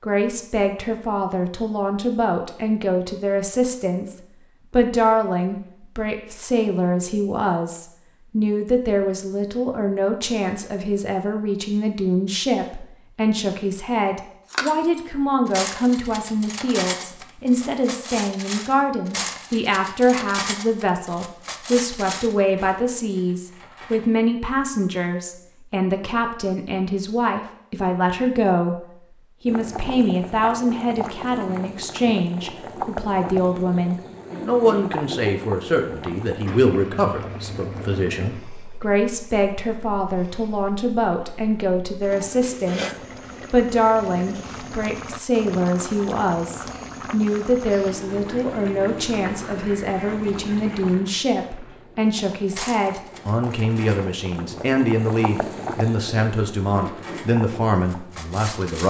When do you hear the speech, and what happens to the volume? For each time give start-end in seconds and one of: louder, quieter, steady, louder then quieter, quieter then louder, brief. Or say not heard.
0.0-28.9 steady
29.4-58.8 steady.